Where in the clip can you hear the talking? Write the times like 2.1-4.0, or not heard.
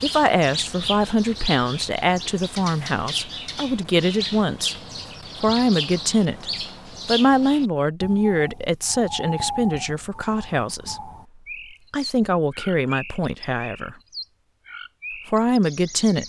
0.0-4.8, 5.4-11.1, 11.9-13.9, 15.2-16.2.